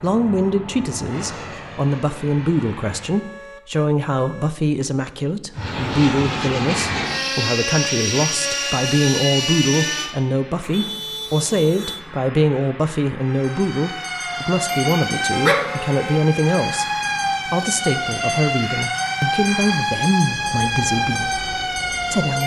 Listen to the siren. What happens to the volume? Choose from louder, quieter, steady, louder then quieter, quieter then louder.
steady.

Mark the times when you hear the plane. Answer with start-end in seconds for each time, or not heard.
0.0-3.2, 5.5-22.4.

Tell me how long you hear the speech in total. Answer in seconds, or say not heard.
22 s.